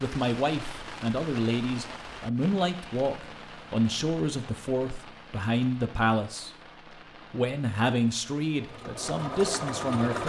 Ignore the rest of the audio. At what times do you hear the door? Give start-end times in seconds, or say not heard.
not heard.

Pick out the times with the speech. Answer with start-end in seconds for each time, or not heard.
0.0-6.5, 7.3-10.2.